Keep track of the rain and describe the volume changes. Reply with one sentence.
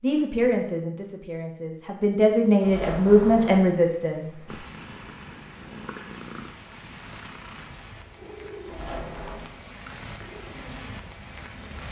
The loudness of the rain goes up.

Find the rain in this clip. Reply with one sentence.
You can hear the rain from 4.0 to 11.8 s.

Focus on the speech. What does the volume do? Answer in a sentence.
The volume of the speech goes down, then up.